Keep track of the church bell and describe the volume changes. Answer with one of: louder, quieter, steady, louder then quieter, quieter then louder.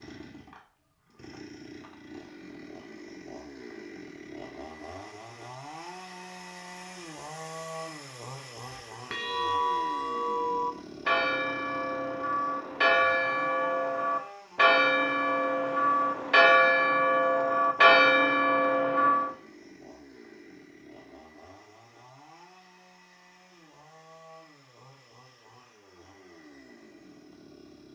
louder.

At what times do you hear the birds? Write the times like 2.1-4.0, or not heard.
not heard.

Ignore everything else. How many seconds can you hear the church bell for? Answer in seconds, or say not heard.
11 s.